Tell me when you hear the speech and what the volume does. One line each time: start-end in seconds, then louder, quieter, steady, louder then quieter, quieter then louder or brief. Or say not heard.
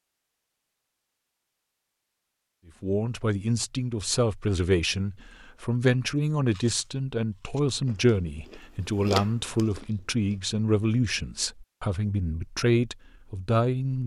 2.8-14.0 steady.